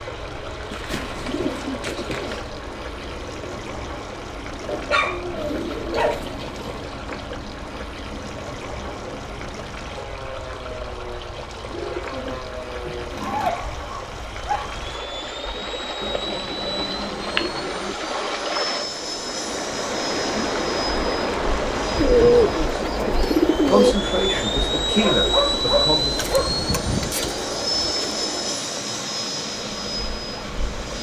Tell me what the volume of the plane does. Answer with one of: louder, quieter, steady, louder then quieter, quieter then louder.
louder.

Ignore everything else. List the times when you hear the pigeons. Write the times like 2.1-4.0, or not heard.
0.7-2.5, 5.3-6.9, 11.7-13.5, 16.0-18.0, 21.9-23.9, 26.1-28.1.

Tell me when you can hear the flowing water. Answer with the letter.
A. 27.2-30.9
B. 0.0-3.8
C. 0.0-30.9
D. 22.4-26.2
C.